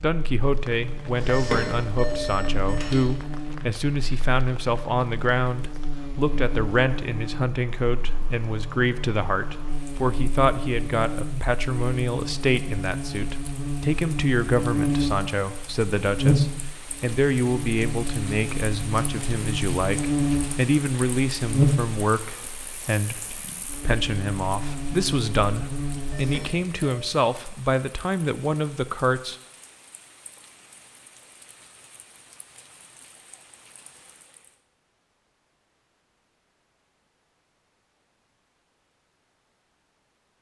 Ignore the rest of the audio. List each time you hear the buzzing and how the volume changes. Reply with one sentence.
The buzzing can be heard from 0.0 to 26.4 s, getting louder.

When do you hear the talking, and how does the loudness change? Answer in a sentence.
The talking can be heard from 0.0 to 29.4 s, at a steady volume.